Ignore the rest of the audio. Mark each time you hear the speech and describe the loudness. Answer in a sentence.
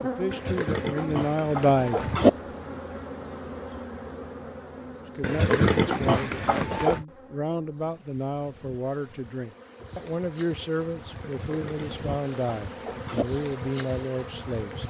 You can hear the speech briefly from 0.0 to 2.8 s; and from 5.2 to 14.8 s, at a steady volume.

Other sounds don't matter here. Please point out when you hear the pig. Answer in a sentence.
You can hear the pig from 0.3 to 2.3 s, from 5.2 to 7.0 s and from 11.2 to 13.2 s.